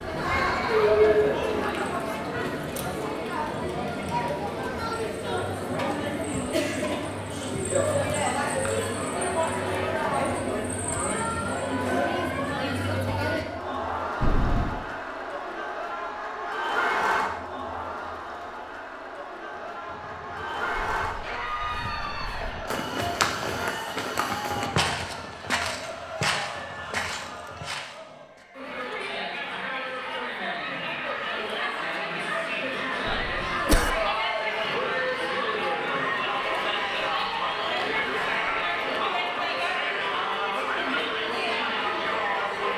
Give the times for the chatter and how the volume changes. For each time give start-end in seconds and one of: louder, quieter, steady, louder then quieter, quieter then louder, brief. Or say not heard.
0.0-42.7 quieter then louder.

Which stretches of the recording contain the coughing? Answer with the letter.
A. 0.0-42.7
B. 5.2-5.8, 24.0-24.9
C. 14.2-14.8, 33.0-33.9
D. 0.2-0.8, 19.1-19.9
C.